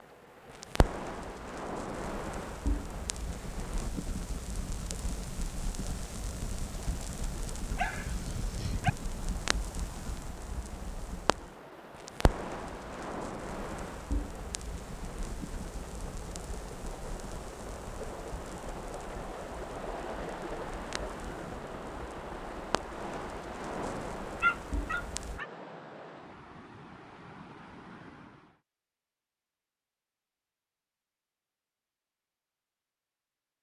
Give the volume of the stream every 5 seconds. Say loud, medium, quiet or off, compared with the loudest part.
medium, medium, medium, loud, loud, medium, off.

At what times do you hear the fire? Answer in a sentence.
The fire can be heard from 0.5 to 25.4 s.